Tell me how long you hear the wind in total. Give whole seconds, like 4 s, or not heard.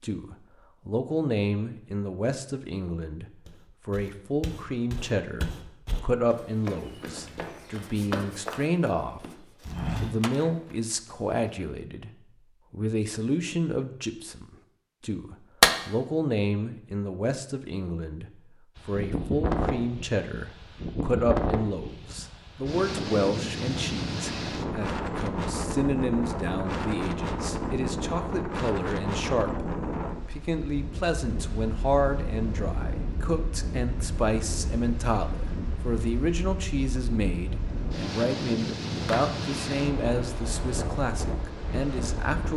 24 s.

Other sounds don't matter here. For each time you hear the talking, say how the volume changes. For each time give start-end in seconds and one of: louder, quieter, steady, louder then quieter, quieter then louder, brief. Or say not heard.
0.0-42.5 steady.